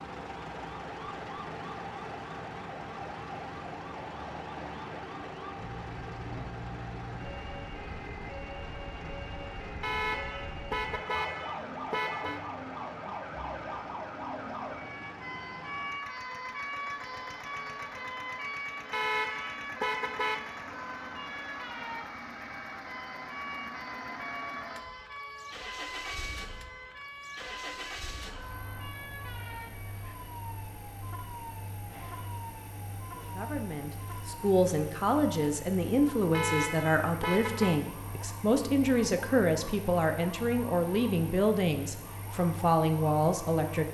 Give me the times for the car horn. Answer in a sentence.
The car horn can be heard from 9.8 to 12.4 s, from 18.9 to 20.4 s and from 36.3 to 37.8 s.